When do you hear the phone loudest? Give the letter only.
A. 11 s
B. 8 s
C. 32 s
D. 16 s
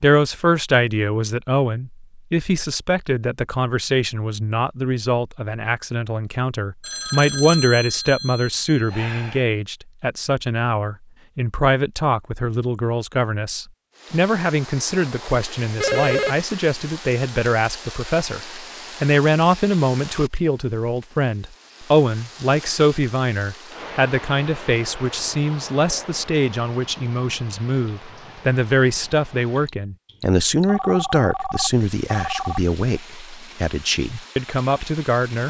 D.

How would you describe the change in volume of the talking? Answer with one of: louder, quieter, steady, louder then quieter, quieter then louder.
steady.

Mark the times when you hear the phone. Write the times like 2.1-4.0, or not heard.
6.8-9.4, 15.8-16.4, 30.6-32.6.